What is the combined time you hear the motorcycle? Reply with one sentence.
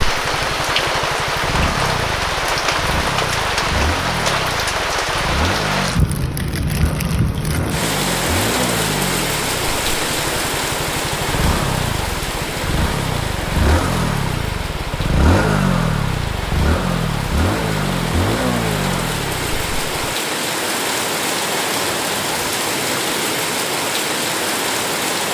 You can hear the motorcycle for 20 seconds altogether.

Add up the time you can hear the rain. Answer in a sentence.
You can hear the rain for 25 seconds altogether.